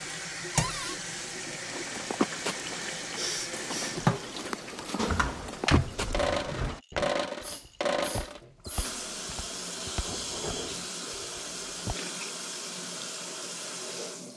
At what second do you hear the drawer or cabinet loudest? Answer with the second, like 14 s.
6 s.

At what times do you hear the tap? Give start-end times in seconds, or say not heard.
0.0-14.3.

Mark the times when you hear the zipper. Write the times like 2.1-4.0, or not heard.
not heard.